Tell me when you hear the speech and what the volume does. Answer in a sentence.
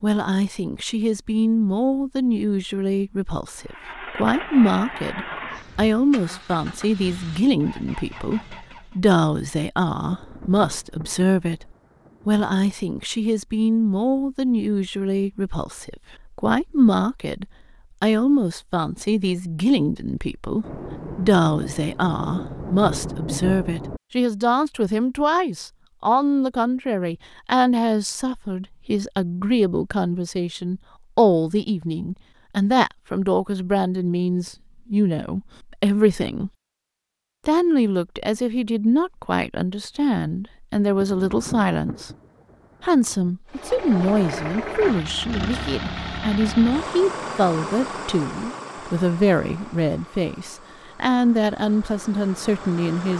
The speech can be heard from 0.0 to 11.7 s, at a steady volume; from 12.2 to 36.5 s, at a steady volume; from 37.5 to 42.1 s, at a steady volume; and from 42.8 to 53.1 s, at a steady volume.